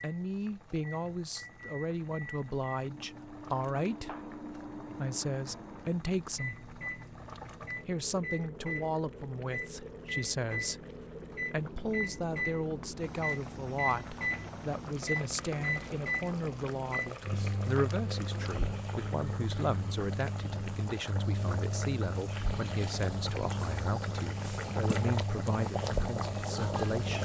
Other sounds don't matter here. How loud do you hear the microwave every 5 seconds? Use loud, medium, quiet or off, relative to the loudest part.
medium, medium, loud, loud, loud, loud.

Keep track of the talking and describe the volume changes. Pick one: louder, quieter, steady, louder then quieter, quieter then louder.
steady.